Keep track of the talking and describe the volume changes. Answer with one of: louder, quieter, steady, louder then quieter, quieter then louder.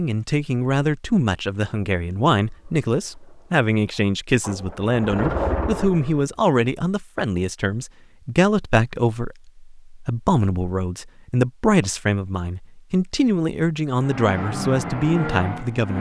steady.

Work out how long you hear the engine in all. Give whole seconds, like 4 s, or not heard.
6 s.